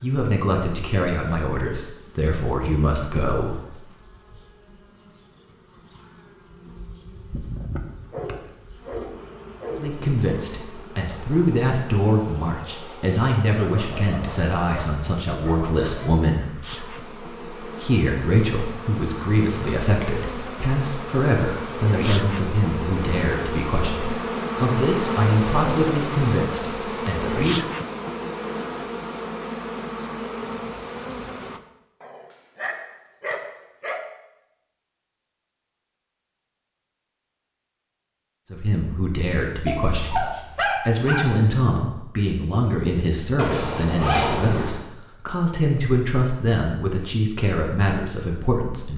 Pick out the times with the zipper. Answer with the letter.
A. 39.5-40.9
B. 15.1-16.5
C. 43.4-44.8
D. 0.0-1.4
C.